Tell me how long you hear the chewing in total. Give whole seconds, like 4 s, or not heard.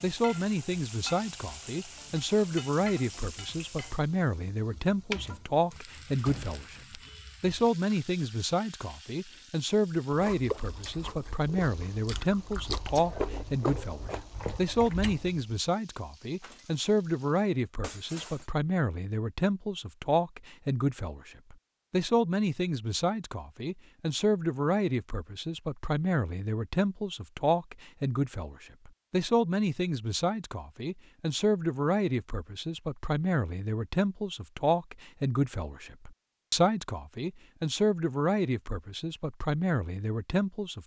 5 s.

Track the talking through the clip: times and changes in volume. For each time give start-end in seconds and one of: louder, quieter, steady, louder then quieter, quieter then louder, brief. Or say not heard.
0.0-40.8 steady.